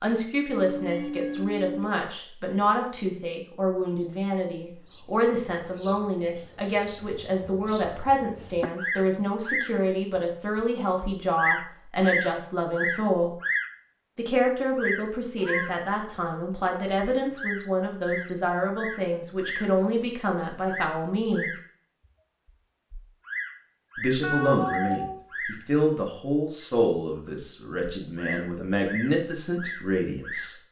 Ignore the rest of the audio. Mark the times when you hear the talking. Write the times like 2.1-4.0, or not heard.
0.0-13.3, 14.2-21.5, 23.9-30.6.